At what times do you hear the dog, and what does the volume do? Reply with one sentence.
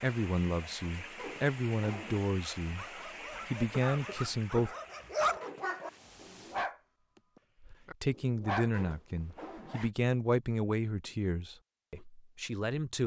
The dog can be heard from 2.4 to 8.7 s, getting louder then quieter.